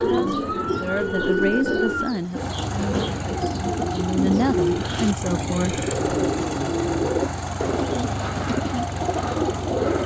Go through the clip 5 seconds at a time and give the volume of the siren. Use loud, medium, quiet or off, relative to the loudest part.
loud, off.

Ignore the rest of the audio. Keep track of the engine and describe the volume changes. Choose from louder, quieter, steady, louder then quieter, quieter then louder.
louder.